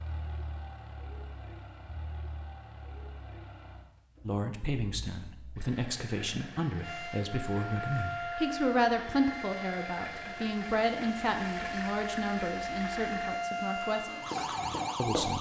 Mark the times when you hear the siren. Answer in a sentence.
The siren can be heard from 6.8 to 15.3 s.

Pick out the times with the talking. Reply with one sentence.
The talking can be heard from 4.2 to 15.3 s.